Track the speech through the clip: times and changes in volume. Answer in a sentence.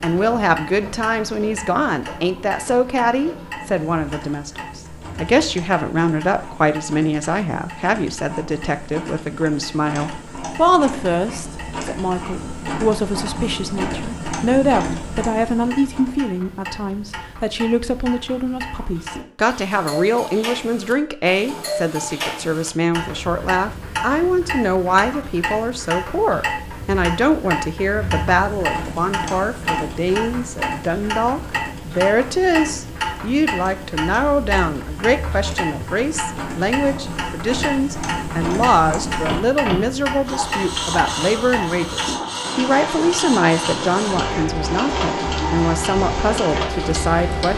You can hear the speech from 0.0 to 47.5 s, at a steady volume.